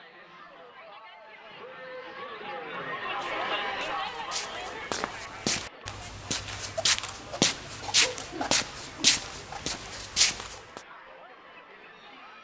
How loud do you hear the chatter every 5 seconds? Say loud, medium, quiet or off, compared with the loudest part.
loud, medium, quiet.